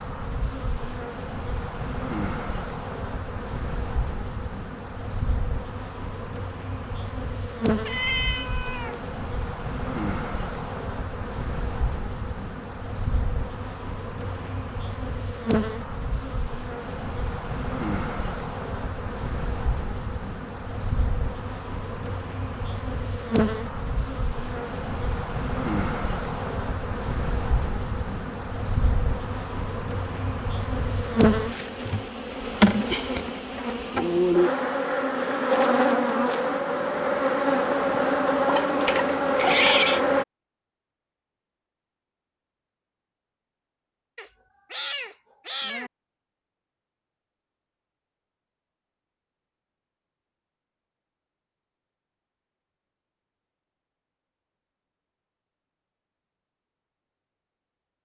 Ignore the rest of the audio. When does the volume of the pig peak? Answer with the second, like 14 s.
40 s.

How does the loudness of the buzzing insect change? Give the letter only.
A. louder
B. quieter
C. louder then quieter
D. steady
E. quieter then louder
A.